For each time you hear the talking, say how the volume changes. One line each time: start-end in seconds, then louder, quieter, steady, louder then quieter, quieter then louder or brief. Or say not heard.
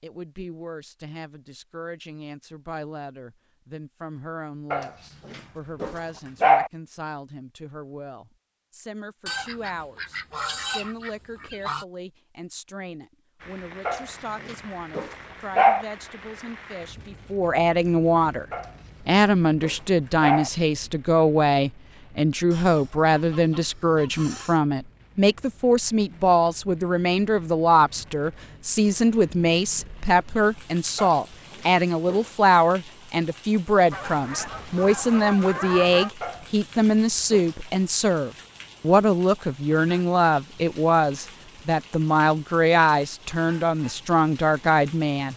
0.0-18.4 louder
19.1-45.3 steady.